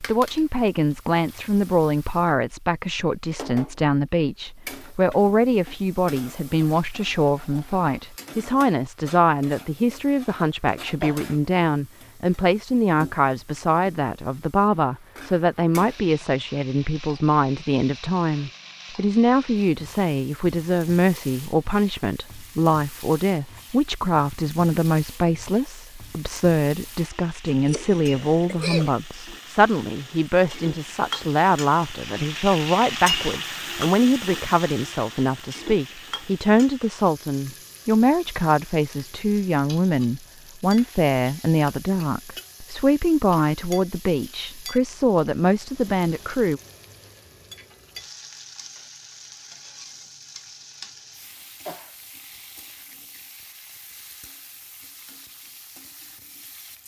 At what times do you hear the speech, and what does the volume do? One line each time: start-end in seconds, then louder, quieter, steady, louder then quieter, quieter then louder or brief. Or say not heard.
0.0-46.6 steady.